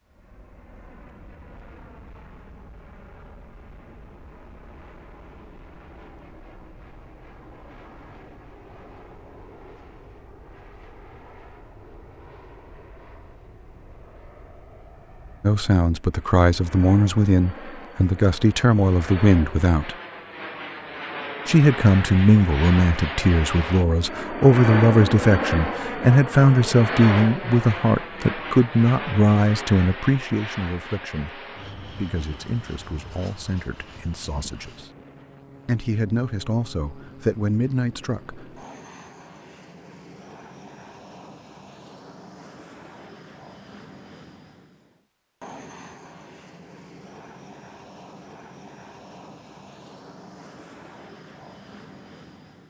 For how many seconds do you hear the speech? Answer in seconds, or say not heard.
21 s.